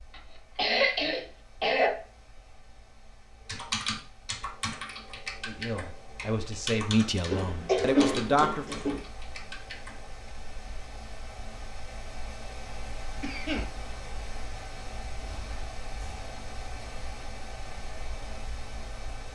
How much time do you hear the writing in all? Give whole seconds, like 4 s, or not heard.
not heard.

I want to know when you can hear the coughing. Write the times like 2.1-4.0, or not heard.
0.6-1.9, 7.2-9.0, 13.2-13.7.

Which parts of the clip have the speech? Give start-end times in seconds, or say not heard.
5.5-8.7.